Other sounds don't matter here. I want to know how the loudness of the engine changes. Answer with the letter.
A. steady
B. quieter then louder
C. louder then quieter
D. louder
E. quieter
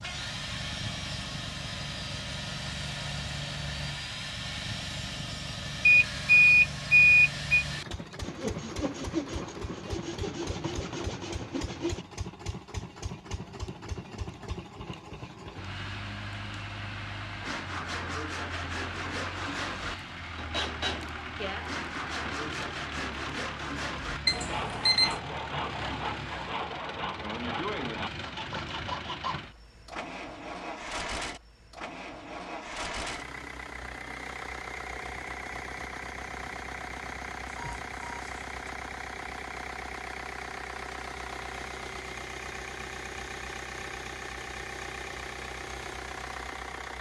A.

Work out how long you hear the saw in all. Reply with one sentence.
The saw can be heard for 24 seconds in total.